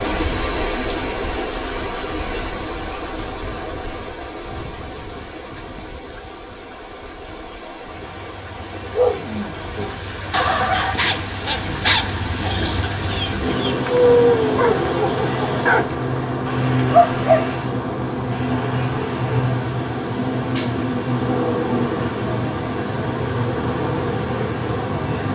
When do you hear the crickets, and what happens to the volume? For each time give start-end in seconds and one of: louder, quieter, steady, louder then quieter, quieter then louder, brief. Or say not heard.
0.0-25.2 quieter then louder.